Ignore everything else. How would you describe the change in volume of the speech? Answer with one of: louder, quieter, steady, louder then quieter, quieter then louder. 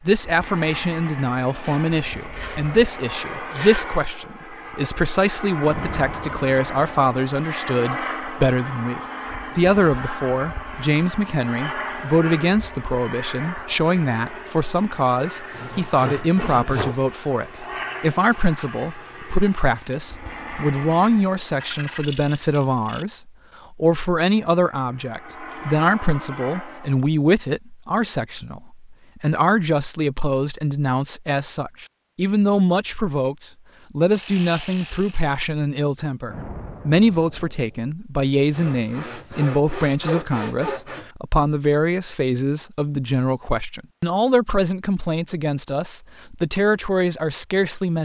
steady.